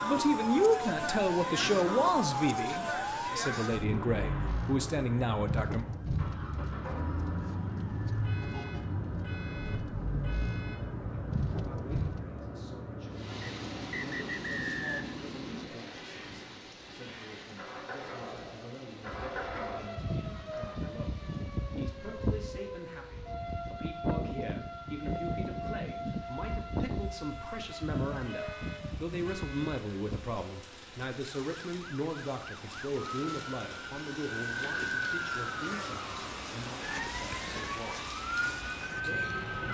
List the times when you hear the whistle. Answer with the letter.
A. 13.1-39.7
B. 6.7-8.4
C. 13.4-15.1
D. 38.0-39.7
C.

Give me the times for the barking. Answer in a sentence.
The barking can't be heard in this clip.